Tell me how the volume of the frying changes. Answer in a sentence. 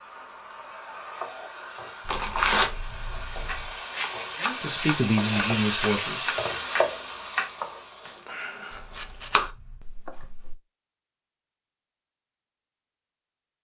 The volume of the frying goes up.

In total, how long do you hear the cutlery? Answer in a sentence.
The cutlery can't be heard in this clip.